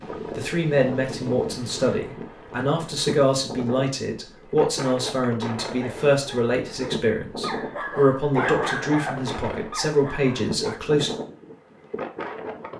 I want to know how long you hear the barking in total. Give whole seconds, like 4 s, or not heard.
5 s.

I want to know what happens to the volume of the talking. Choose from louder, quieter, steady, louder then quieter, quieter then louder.
steady.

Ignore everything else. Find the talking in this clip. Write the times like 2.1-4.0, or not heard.
0.2-11.1.